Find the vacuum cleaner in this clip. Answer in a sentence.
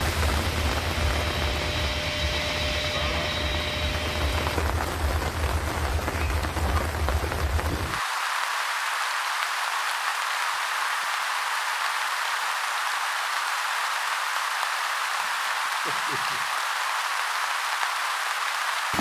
You can hear the vacuum cleaner from 0.1 to 4.6 s.